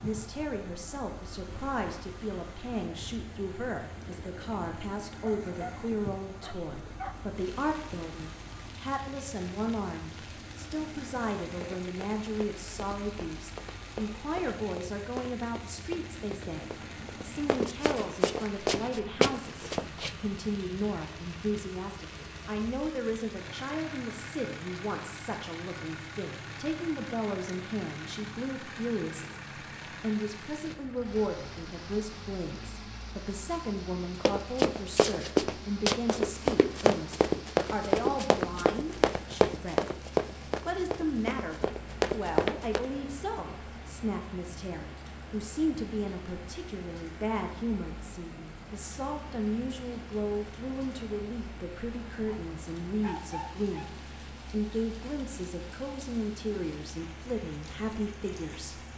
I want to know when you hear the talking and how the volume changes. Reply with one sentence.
You can hear the talking from 0.0 to 58.8 s, at a steady volume.